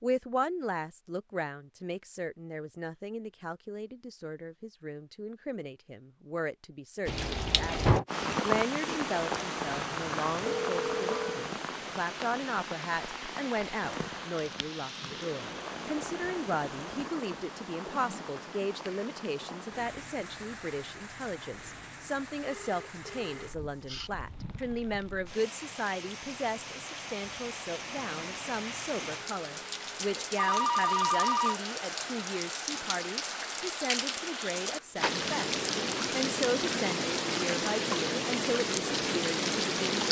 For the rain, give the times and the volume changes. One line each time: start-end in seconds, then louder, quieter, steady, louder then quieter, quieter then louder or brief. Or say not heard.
7.0-40.0 quieter then louder.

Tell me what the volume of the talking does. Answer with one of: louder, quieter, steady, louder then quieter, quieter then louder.
steady.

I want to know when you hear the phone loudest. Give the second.
31 s.